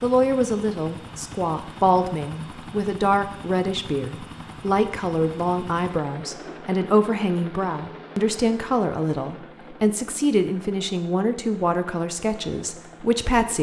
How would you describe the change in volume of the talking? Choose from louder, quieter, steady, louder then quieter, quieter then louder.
steady.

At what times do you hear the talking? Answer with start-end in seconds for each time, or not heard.
0.0-13.5.